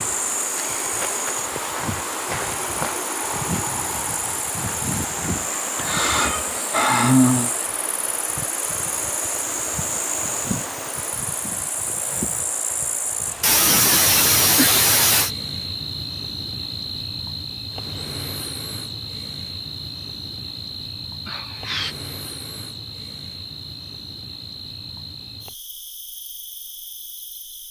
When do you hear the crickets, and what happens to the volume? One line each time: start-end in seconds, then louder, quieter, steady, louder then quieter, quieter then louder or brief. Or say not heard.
0.0-27.6 quieter.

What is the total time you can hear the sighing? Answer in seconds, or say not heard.
4 s.